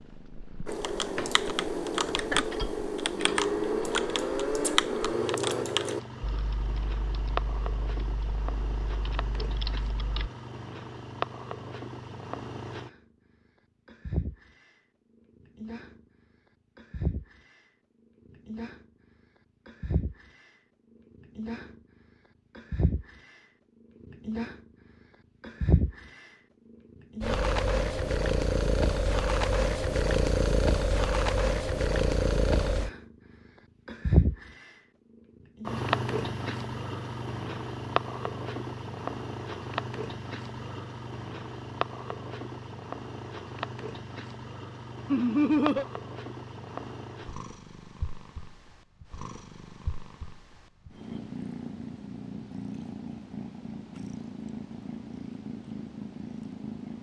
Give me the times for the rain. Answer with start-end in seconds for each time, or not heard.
not heard.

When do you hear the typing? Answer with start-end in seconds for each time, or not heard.
0.7-10.3.